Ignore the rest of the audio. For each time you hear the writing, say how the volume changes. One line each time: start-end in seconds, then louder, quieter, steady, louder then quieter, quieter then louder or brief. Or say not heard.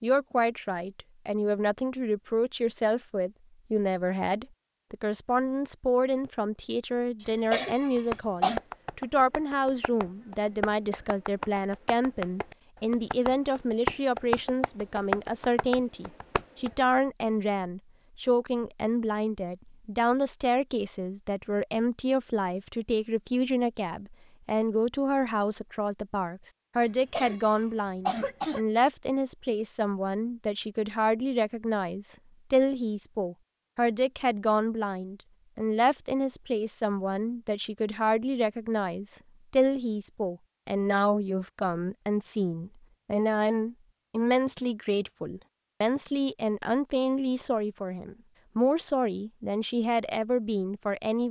not heard.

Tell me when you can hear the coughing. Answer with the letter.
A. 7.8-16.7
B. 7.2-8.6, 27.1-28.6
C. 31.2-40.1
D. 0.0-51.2
B.